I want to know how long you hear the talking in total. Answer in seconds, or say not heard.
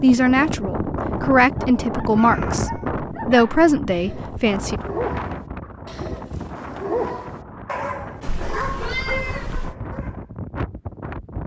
5 s.